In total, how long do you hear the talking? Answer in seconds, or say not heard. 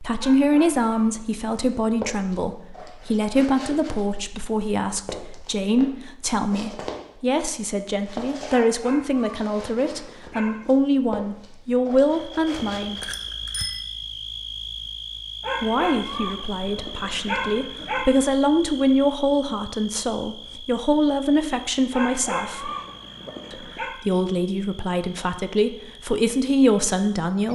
24 s.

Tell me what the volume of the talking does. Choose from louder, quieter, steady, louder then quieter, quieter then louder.
steady.